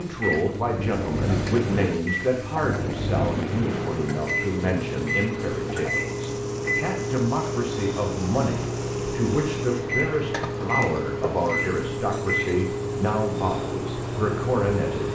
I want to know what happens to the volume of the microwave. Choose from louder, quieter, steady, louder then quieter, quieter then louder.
steady.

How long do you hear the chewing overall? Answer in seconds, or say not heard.
not heard.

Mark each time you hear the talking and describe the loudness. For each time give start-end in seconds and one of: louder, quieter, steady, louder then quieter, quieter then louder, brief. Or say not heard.
0.0-15.1 steady.